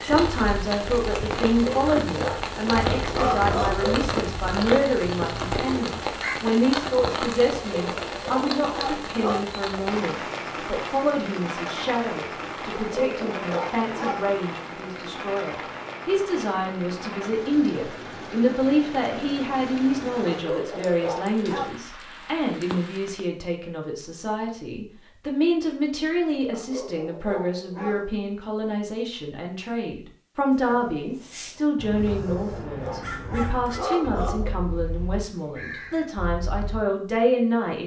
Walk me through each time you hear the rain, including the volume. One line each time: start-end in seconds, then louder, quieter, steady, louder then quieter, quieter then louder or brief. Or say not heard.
0.0-23.2 quieter.